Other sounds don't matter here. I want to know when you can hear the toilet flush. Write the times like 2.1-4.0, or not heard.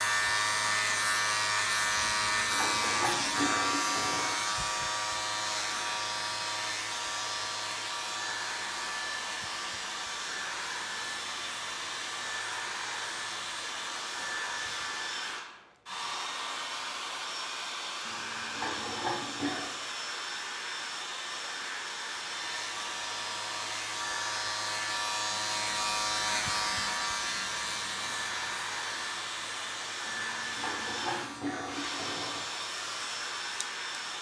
2.0-4.5, 18.1-19.8, 30.1-32.5.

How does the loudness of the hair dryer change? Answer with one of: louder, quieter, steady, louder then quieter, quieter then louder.
steady.